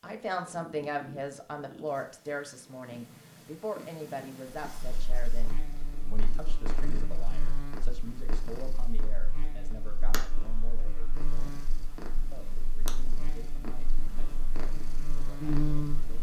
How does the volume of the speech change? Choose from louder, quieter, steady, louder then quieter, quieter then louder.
quieter.